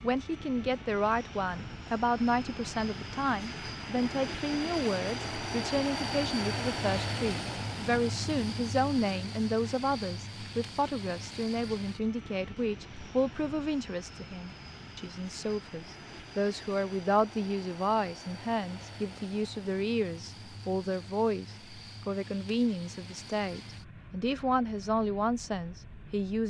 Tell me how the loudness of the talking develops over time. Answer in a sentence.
The loudness of the talking stays about the same.